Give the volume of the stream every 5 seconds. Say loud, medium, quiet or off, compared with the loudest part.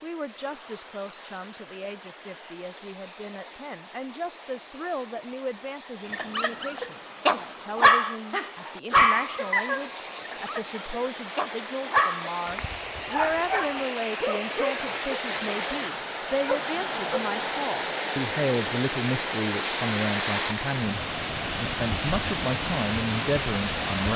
quiet, quiet, medium, loud, loud.